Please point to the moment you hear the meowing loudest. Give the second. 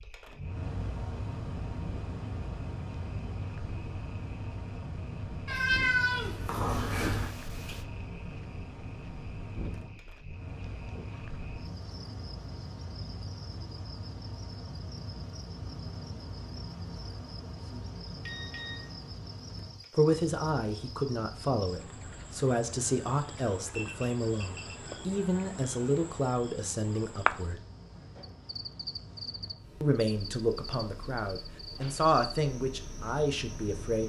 6 s.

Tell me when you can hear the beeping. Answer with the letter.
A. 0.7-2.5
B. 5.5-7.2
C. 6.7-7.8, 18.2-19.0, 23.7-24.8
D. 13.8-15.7
C.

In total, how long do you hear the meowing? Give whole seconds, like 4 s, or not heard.
2 s.